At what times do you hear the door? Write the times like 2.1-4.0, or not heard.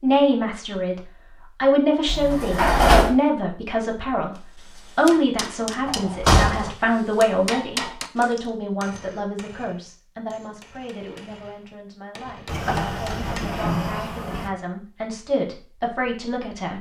2.0-3.1, 5.8-6.7, 12.4-14.5.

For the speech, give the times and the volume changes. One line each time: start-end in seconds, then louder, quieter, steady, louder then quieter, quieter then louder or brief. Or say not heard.
0.0-16.7 quieter then louder.